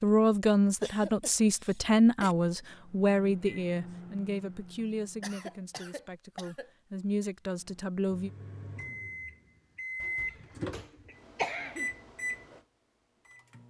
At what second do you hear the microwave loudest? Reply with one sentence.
The loudest moment of the microwave is at 10 seconds.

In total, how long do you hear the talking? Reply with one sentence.
The talking can be heard for 8 seconds in total.